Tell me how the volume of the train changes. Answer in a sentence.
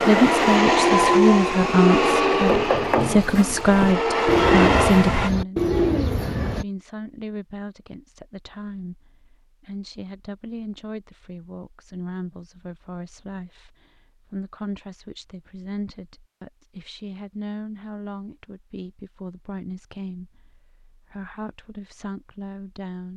The loudness of the train goes down, then up.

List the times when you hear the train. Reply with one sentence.
The train can be heard from 0.0 to 5.3 s.